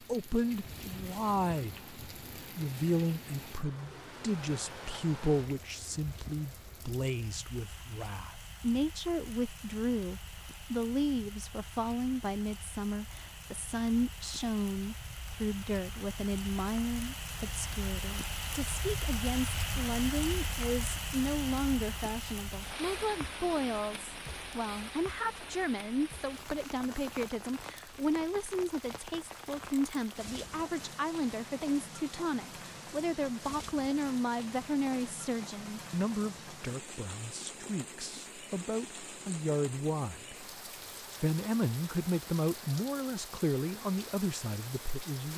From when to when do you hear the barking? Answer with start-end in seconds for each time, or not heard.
not heard.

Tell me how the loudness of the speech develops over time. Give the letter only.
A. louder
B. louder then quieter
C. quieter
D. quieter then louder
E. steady
E.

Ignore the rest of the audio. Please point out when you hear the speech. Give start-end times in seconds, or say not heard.
0.0-40.5, 41.2-45.3.